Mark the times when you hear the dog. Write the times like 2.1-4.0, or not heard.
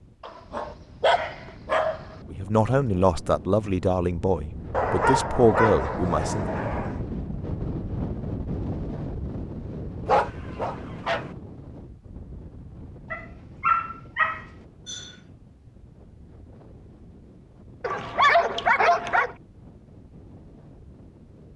0.2-2.1, 4.7-7.0, 10.1-11.2, 13.1-15.1, 17.8-19.4.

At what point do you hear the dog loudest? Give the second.
18 s.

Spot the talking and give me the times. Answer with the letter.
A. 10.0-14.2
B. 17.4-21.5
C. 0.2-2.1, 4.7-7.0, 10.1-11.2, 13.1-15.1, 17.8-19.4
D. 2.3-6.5
D.